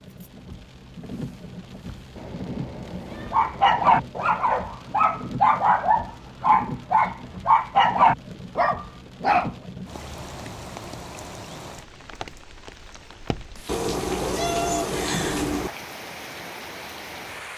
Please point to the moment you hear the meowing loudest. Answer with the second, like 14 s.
15 s.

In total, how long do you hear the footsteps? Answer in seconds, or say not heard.
not heard.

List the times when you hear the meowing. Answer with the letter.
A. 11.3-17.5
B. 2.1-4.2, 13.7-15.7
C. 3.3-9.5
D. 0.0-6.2
B.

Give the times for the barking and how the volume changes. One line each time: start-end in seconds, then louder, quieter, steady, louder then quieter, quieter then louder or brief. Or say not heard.
3.3-9.5 steady.